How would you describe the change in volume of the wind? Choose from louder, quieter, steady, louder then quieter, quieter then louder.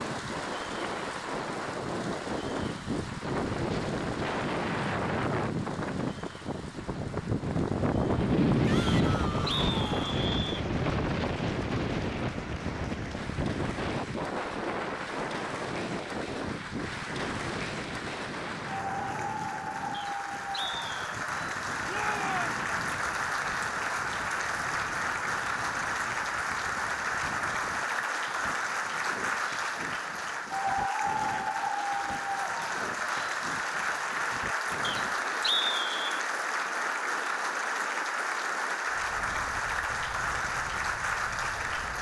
quieter.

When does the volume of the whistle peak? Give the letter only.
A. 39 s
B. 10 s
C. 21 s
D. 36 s
D.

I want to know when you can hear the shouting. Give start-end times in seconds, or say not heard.
8.6-10.2, 21.9-22.6.